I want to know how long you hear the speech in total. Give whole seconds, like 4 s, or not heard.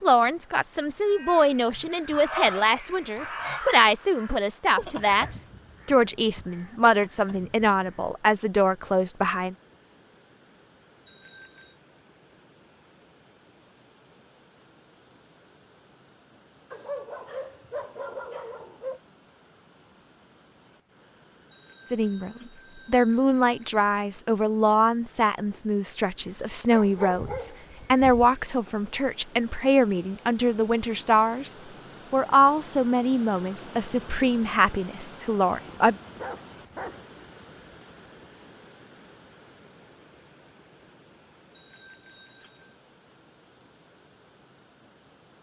23 s.